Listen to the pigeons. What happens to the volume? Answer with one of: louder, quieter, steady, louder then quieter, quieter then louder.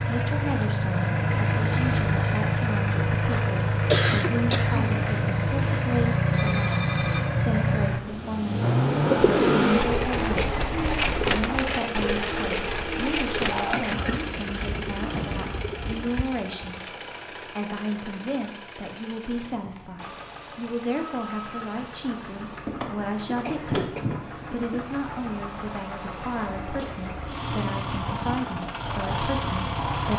quieter.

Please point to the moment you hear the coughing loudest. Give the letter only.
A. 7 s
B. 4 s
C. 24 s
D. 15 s
B.